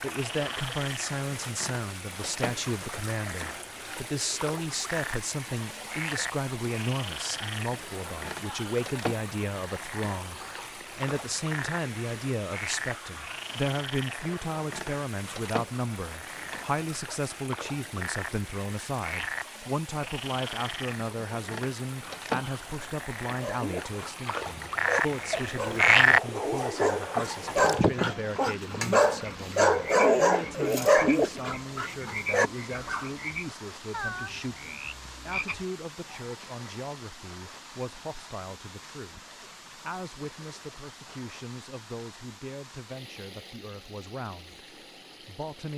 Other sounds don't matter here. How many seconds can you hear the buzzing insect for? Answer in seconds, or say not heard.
not heard.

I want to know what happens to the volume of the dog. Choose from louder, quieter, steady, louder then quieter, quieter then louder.
louder.